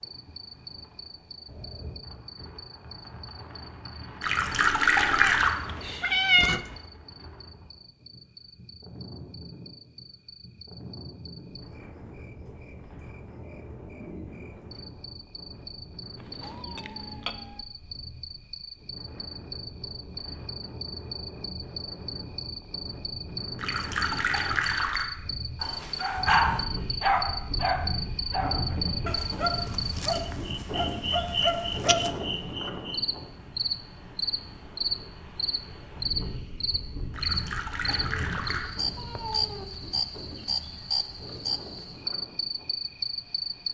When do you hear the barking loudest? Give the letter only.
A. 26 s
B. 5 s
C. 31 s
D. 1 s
A.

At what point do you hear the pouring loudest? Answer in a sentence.
The loudest moment of the pouring is at 5 seconds.